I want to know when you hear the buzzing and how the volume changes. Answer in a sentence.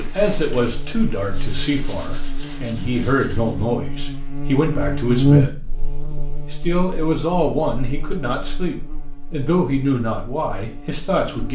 You can hear the buzzing from 0.0 to 11.5 s, getting louder then quieter.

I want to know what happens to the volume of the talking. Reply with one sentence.
The loudness of the talking stays about the same.